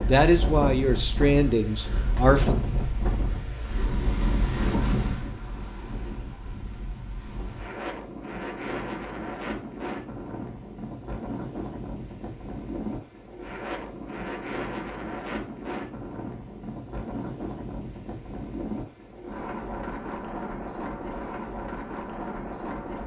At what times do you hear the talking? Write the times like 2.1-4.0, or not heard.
0.1-2.6.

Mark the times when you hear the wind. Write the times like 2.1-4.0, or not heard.
0.0-23.0.